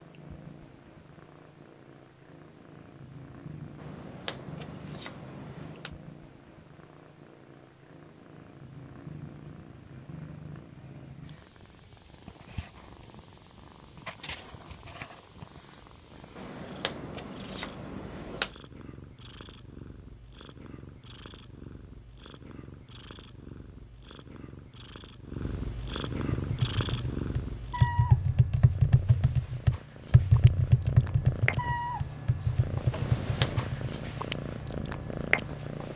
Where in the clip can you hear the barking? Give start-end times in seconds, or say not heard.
not heard.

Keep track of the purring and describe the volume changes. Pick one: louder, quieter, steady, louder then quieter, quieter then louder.
louder.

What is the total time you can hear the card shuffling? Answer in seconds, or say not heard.
5 s.